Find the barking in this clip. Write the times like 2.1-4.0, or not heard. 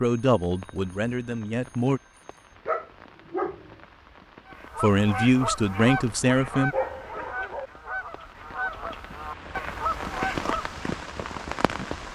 2.6-3.8, 6.7-7.7.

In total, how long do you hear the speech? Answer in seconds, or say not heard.
4 s.